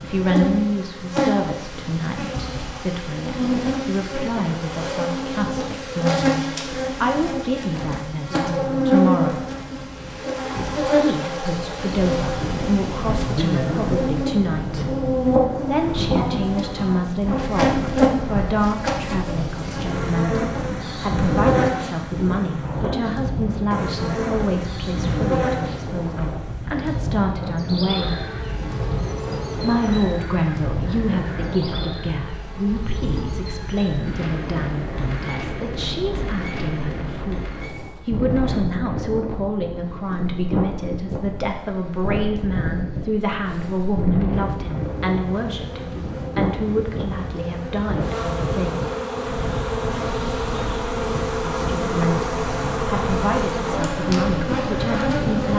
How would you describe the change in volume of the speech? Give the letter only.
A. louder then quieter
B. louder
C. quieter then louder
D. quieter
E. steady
E.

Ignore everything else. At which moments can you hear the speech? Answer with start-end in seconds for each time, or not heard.
0.0-9.4, 10.8-14.9, 15.7-28.2, 29.6-37.4, 38.0-48.9, 51.5-55.5.